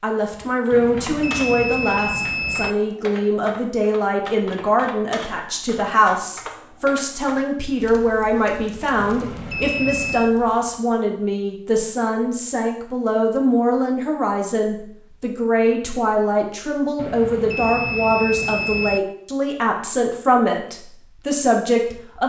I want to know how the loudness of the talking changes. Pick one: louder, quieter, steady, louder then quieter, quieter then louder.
steady.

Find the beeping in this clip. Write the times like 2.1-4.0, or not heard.
0.7-2.8, 9.0-10.3, 16.9-19.0.